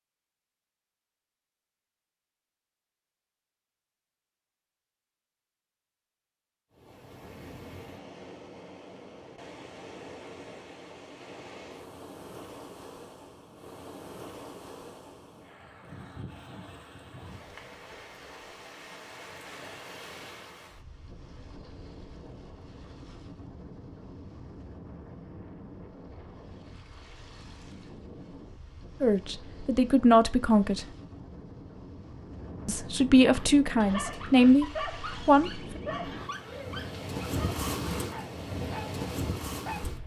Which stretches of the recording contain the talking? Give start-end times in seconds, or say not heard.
29.0-30.9, 32.6-35.5.